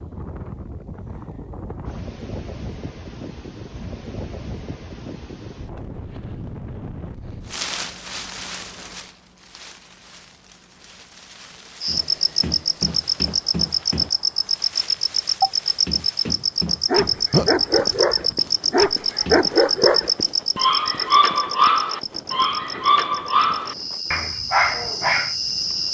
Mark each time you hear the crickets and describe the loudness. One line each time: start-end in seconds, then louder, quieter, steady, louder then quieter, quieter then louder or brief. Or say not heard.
11.8-25.8 quieter.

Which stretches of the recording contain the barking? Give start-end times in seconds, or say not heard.
16.9-25.4.